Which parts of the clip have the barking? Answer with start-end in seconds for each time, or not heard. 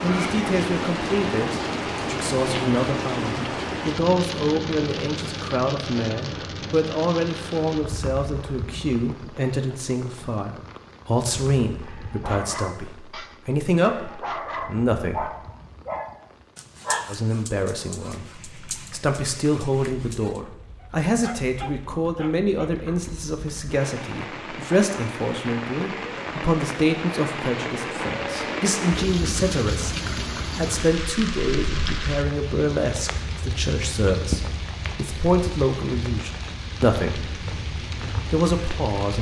11.8-23.0.